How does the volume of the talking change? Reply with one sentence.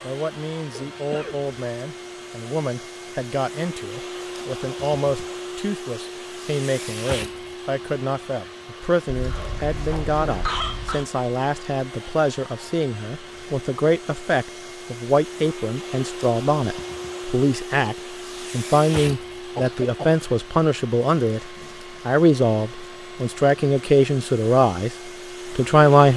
The loudness of the talking goes up.